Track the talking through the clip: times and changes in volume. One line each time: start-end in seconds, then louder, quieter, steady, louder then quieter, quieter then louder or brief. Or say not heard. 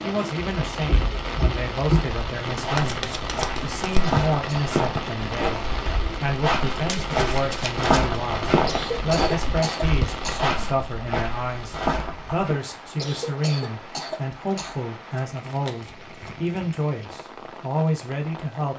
0.0-18.7 steady.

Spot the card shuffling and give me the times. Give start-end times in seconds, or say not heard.
2.7-4.1, 6.7-8.2, 15.3-16.5.